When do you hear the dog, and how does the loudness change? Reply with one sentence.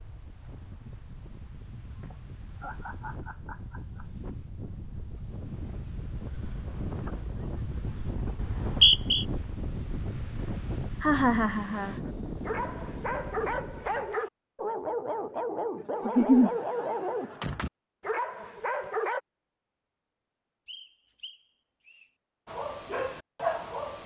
You can hear the dog from 12.1 to 19.2 s, at a steady volume; and briefly from 22.4 to 24.0 s.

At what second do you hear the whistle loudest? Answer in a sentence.
The loudest moment of the whistle is at 9 seconds.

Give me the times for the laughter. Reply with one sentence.
The laughter can be heard from 2.0 to 4.0 s, from 11.0 to 11.9 s and from 16.1 to 16.5 s.